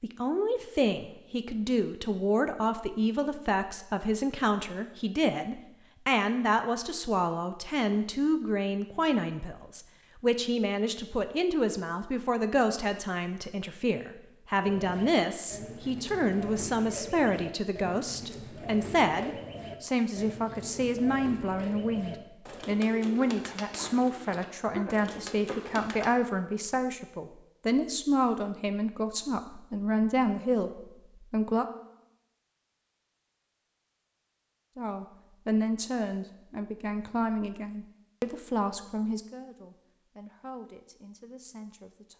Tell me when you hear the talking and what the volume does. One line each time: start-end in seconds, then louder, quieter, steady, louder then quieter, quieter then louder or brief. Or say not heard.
0.0-31.6 steady
34.8-42.1 quieter.